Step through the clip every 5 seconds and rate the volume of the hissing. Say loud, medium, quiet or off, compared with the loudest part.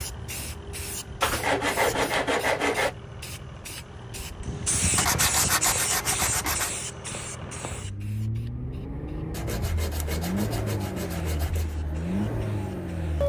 loud, loud, quiet.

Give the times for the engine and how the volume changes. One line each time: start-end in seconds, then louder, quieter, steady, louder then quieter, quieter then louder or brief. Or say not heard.
0.0-13.2 louder.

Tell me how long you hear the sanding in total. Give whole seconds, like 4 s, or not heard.
6 s.